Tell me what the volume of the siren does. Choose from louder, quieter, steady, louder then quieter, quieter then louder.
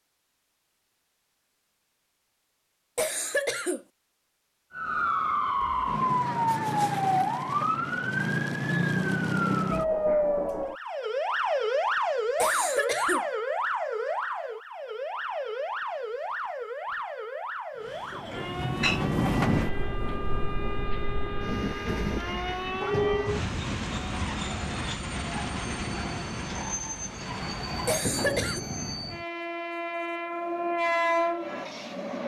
quieter.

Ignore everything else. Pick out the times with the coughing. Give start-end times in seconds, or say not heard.
3.0-3.8, 12.4-13.2, 27.9-28.6.